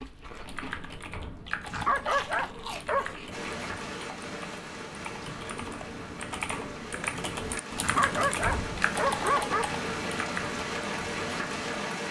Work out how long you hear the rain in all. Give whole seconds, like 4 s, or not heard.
9 s.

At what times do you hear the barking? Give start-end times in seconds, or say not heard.
1.6-3.1, 7.8-9.7.